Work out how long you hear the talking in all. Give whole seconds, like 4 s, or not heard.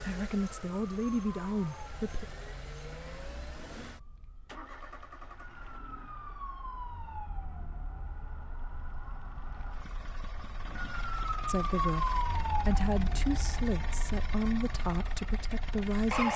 7 s.